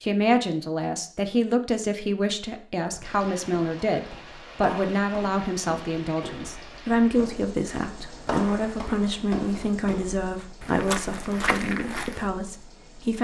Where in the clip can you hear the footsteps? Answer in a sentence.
The footsteps can be heard from 2.9 to 12.2 s.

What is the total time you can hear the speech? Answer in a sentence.
The speech can be heard for 13 seconds in total.